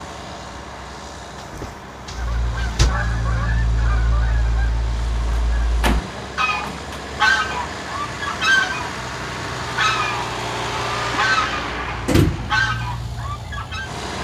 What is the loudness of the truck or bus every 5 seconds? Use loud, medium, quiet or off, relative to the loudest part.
medium, loud, loud.